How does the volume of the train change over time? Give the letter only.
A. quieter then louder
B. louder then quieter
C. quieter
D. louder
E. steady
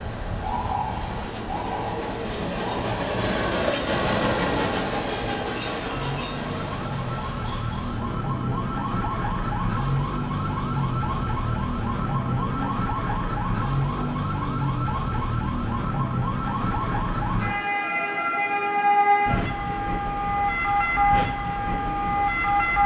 C.